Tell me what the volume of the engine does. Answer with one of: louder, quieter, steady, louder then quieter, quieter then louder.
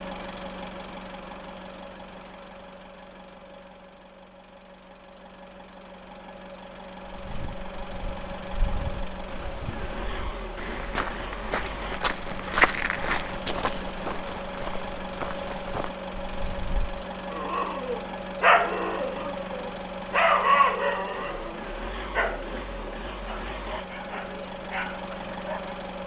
louder.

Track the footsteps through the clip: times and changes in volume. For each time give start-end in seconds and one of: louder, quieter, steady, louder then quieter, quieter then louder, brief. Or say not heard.
7.1-16.9 louder then quieter.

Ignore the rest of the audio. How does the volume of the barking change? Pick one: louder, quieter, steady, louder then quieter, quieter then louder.
quieter.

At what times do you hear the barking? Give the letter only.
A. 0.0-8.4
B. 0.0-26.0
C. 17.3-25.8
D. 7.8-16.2
C.